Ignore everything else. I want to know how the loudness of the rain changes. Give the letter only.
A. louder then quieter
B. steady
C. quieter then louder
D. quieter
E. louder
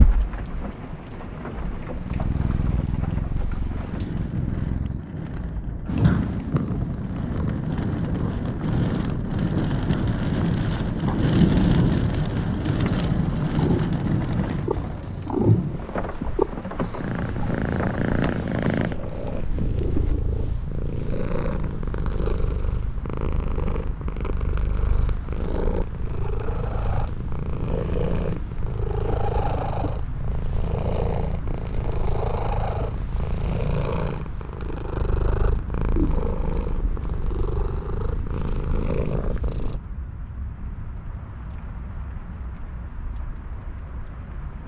A.